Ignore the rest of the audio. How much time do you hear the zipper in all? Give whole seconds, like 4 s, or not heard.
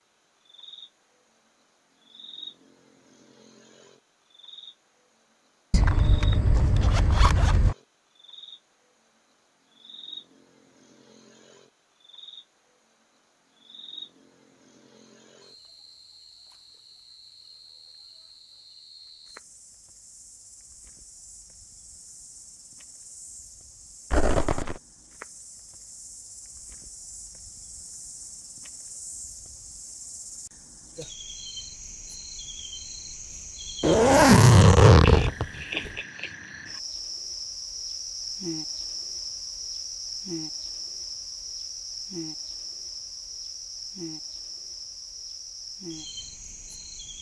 5 s.